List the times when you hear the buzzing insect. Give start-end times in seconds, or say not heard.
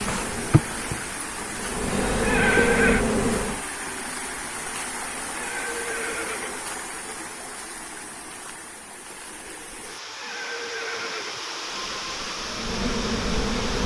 0.0-3.6, 11.6-13.8.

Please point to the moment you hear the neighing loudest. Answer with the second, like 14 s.
3 s.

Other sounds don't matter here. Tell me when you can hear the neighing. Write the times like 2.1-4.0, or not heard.
2.1-3.0, 5.3-6.7, 10.1-11.5.